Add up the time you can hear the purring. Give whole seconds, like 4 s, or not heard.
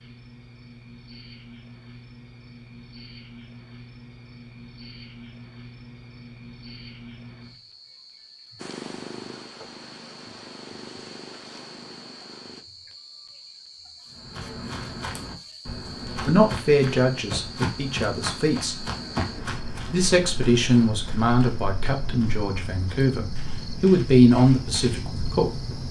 4 s.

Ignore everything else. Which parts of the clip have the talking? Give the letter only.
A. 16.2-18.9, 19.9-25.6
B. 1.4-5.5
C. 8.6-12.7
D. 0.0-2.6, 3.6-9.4
A.